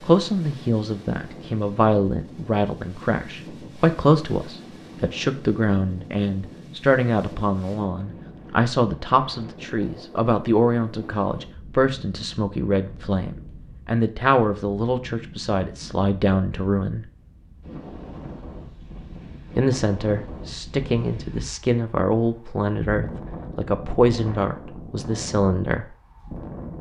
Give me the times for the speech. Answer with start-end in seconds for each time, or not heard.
0.0-17.1, 19.6-25.9.